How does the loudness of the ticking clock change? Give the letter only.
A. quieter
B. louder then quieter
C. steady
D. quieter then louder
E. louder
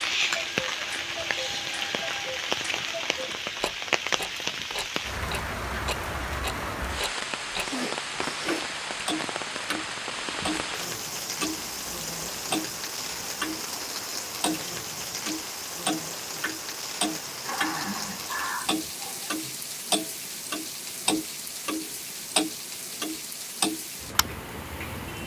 E.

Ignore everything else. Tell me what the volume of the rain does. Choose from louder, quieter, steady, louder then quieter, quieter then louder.
quieter.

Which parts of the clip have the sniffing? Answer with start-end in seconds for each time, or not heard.
7.6-8.7, 17.2-19.8.